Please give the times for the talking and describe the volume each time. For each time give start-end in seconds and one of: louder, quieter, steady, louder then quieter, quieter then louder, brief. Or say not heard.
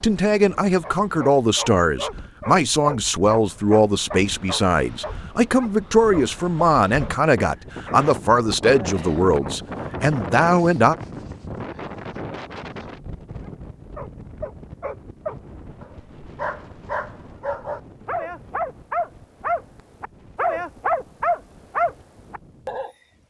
0.0-10.9 steady.